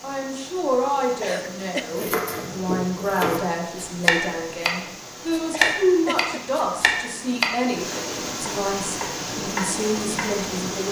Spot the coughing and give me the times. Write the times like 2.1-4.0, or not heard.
1.2-2.1, 5.5-6.4.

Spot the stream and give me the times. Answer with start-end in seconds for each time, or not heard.
0.0-10.8.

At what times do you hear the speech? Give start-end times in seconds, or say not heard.
0.0-10.8.